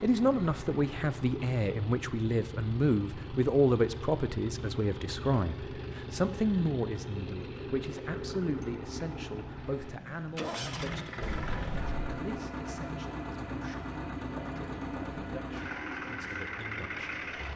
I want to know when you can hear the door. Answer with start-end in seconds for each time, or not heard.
11.2-12.1.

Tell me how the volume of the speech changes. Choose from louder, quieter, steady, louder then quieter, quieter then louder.
quieter.